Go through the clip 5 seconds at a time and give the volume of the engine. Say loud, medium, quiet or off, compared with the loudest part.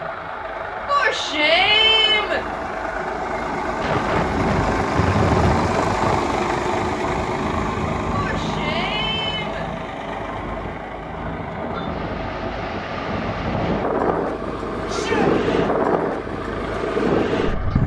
loud, loud, medium, medium.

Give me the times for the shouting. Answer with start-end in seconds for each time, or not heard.
0.8-2.4, 8.1-9.7, 14.8-15.3.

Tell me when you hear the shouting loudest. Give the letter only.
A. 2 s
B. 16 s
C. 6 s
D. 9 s
A.